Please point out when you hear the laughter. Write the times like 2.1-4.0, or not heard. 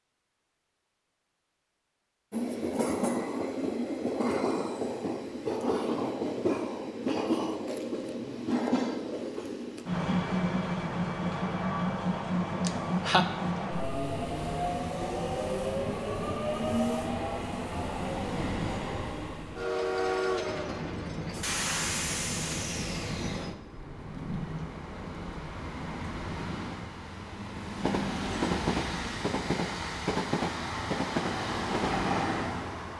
12.6-13.2.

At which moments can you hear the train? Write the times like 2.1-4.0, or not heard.
2.3-32.9.